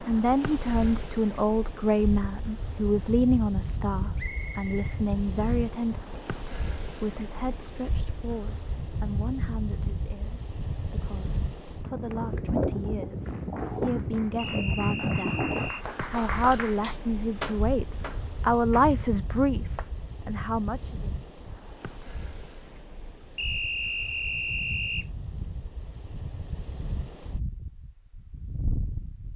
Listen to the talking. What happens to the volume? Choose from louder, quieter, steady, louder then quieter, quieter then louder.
quieter then louder.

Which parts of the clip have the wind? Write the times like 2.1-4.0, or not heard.
0.0-29.3.